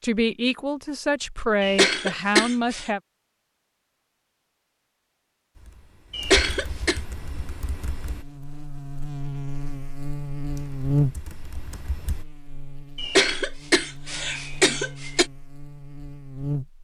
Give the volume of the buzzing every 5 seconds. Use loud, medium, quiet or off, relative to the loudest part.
off, medium, loud, loud.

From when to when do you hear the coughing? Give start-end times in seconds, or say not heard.
1.6-2.9, 6.1-7.0, 12.9-15.2.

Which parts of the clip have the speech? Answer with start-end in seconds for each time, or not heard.
0.0-3.0.